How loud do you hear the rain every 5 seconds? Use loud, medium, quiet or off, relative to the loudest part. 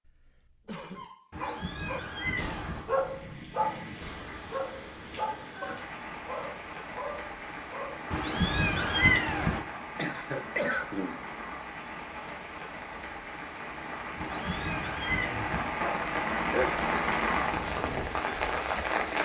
quiet, medium, medium, loud.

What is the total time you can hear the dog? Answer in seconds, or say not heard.
9 s.